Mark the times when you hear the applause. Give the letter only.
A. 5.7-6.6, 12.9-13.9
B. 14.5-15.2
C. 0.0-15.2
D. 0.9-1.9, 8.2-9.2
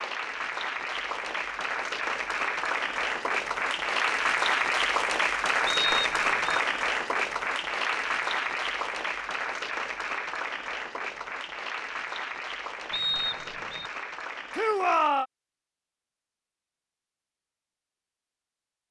C.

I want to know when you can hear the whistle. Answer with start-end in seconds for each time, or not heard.
5.7-6.6, 12.9-13.9.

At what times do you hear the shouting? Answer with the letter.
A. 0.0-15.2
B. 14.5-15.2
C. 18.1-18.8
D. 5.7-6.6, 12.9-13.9
B.